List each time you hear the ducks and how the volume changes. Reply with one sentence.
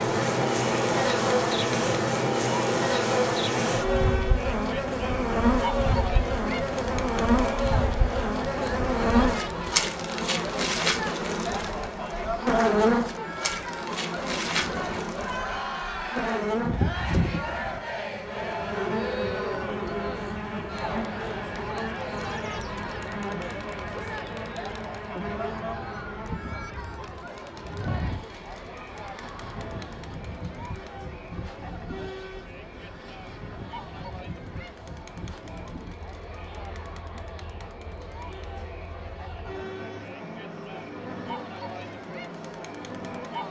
You can't hear the ducks here.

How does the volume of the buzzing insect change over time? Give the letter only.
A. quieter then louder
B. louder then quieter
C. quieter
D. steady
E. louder
C.